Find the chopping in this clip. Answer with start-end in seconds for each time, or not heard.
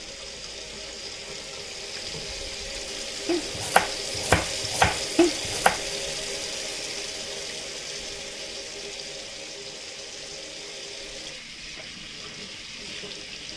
3.2-5.8.